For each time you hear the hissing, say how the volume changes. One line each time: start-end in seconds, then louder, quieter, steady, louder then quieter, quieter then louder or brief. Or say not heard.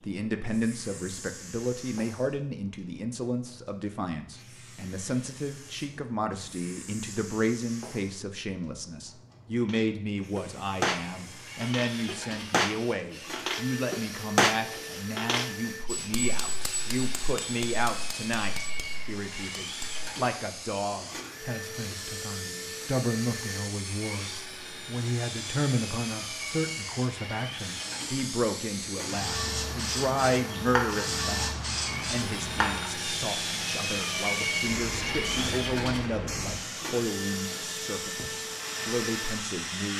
0.0-39.9 louder.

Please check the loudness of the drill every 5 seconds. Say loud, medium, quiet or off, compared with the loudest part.
off, off, medium, medium, medium, medium, loud, loud.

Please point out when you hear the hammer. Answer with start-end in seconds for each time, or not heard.
9.7-20.1.